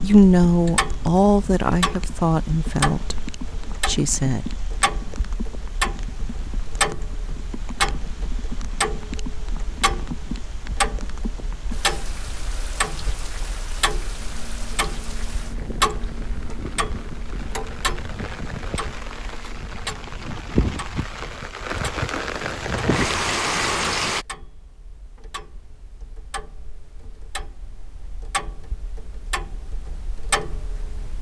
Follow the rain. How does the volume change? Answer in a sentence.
The loudness of the rain goes up.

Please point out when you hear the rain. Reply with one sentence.
You can hear the rain from 0.0 to 24.2 s.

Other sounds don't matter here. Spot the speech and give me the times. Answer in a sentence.
You can hear the speech from 0.0 to 4.5 s.